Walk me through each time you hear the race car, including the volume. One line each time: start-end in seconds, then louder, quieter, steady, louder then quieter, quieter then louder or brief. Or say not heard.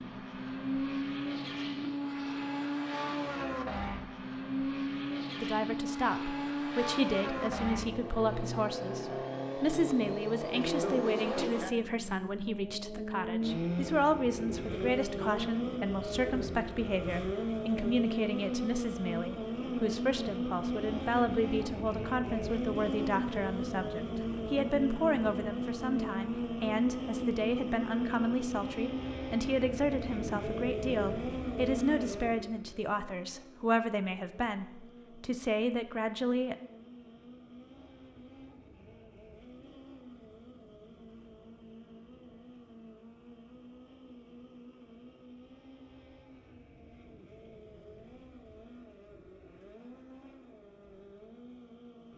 0.0-52.1 quieter.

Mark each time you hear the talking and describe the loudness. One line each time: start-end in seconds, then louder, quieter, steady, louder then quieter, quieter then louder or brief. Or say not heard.
5.4-36.5 steady.